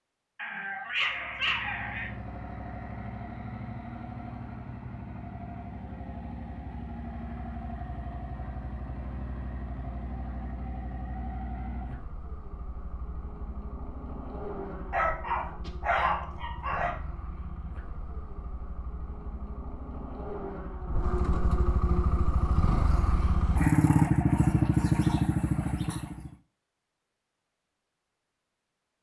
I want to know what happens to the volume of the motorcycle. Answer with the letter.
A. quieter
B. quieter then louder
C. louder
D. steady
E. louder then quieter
C.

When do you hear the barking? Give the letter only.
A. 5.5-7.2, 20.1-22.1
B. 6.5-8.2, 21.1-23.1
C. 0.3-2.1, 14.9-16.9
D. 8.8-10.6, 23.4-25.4
C.